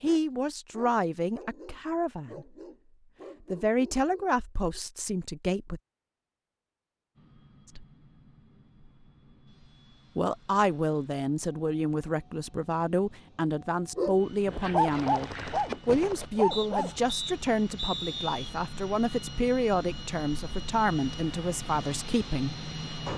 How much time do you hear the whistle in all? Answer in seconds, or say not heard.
2 s.